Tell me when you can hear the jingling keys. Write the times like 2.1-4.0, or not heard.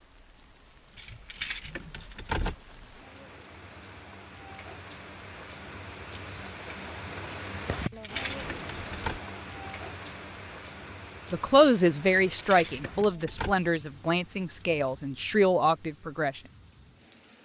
0.9-2.5, 7.7-9.2, 12.1-13.6.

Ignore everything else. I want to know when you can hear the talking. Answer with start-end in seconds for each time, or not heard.
11.3-16.4.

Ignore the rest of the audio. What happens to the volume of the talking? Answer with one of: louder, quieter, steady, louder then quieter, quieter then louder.
quieter then louder.